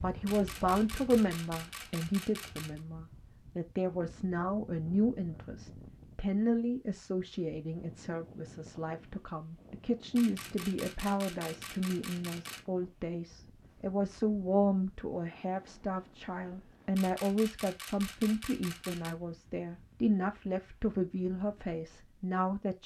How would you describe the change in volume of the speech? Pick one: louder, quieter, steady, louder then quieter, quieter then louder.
steady.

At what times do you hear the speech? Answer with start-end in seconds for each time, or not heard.
0.0-22.8.